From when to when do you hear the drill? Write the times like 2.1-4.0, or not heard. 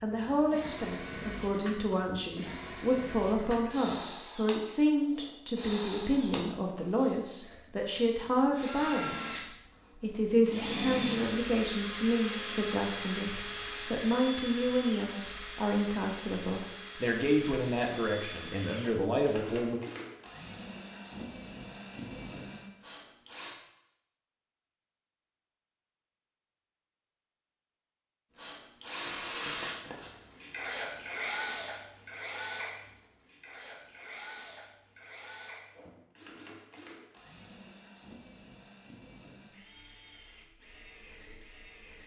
0.0-23.6, 28.4-42.0.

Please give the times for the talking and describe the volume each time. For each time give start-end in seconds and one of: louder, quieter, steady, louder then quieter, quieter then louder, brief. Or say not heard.
0.0-19.8 steady.